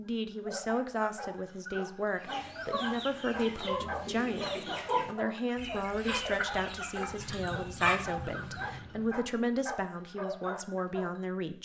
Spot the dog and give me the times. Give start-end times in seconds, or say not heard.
0.1-11.2.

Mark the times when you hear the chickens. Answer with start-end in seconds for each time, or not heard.
2.2-8.7.